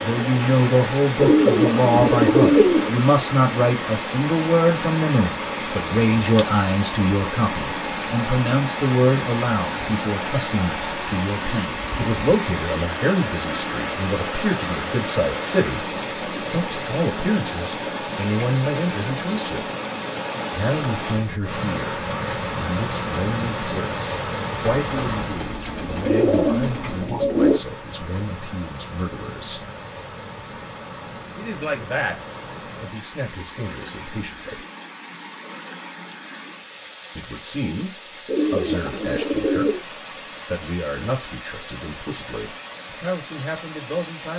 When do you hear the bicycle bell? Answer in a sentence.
The bicycle bell can't be heard in this clip.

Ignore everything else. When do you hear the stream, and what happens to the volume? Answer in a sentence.
You can hear the stream from 0.0 to 44.3 s, getting quieter.